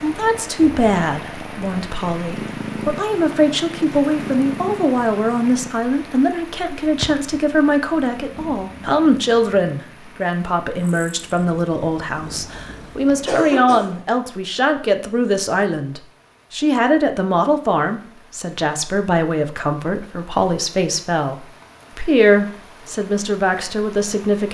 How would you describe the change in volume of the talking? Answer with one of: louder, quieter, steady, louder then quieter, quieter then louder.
steady.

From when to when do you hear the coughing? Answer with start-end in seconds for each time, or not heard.
12.6-14.1.